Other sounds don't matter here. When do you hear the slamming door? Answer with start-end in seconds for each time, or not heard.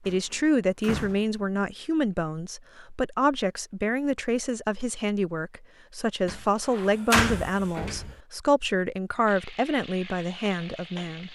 0.1-1.4, 6.2-8.2.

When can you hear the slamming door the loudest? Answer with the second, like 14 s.
7 s.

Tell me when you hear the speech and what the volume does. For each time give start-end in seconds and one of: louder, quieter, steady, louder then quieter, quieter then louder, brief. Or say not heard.
0.1-11.3 steady.